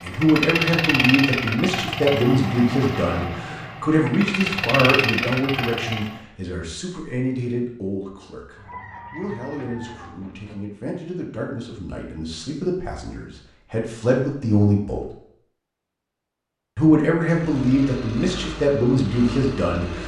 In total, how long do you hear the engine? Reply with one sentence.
You can hear the engine for 9 seconds altogether.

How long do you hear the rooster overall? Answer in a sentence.
You can hear the rooster for 2 seconds altogether.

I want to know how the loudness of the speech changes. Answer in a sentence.
The loudness of the speech goes down, then up.